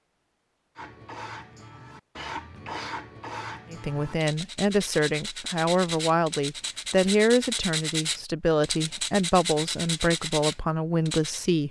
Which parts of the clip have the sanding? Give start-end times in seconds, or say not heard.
0.8-11.4.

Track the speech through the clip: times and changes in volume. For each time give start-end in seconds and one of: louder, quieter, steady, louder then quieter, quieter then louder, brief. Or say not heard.
3.7-11.6 steady.